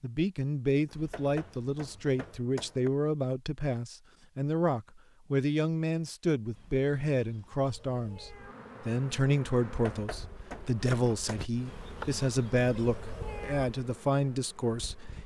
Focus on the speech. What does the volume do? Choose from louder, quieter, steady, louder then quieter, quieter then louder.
steady.